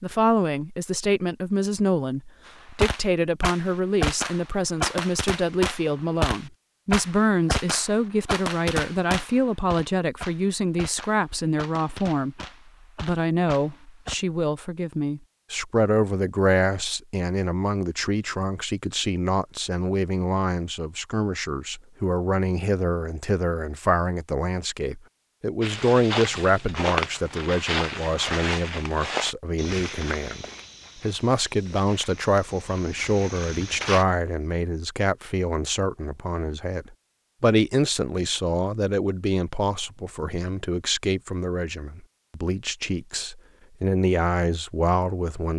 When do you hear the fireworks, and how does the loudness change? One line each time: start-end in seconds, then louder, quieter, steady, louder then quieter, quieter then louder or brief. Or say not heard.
2.8-14.2 quieter.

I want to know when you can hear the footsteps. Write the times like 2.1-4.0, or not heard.
25.6-34.0.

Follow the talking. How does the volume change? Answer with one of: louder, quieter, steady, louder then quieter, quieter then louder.
steady.